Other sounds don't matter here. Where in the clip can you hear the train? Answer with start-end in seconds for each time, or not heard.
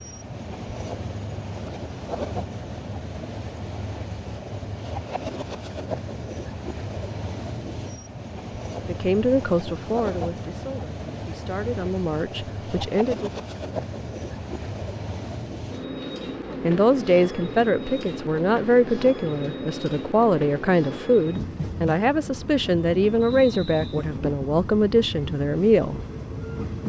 0.0-26.8.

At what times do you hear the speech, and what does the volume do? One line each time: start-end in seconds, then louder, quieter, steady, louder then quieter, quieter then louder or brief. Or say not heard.
8.8-13.3 quieter then louder
16.6-25.9 steady.